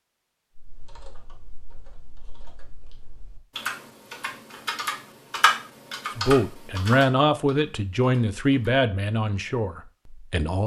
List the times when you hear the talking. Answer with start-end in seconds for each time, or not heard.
6.2-10.6.